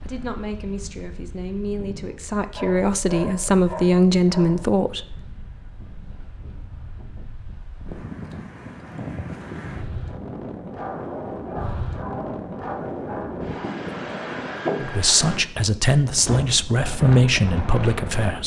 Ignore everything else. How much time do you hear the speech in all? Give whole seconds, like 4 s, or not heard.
9 s.